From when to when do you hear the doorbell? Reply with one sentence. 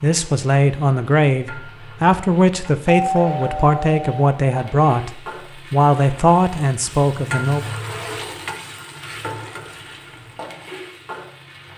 The doorbell can be heard from 2.9 to 4.2 s.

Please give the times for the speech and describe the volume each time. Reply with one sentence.
The speech can be heard from 0.0 to 7.7 s, at a steady volume.